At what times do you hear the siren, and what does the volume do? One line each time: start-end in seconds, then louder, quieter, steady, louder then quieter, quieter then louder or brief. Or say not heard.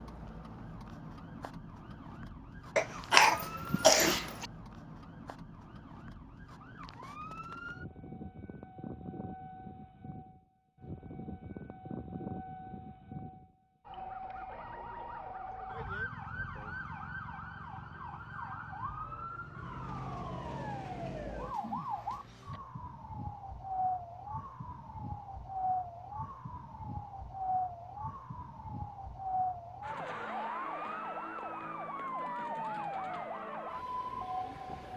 0.0-34.9 louder.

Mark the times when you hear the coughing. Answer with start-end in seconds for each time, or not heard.
2.8-4.5.